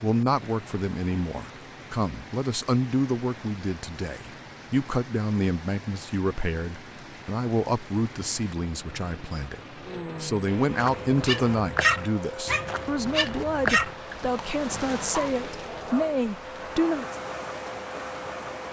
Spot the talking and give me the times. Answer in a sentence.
The talking can be heard from 0.0 to 9.6 s and from 10.2 to 17.1 s.